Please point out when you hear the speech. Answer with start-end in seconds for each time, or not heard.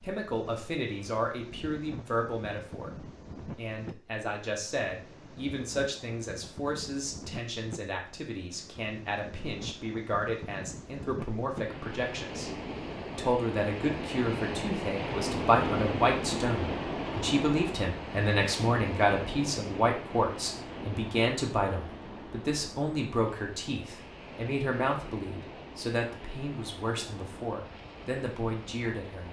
0.0-12.5, 13.2-29.2.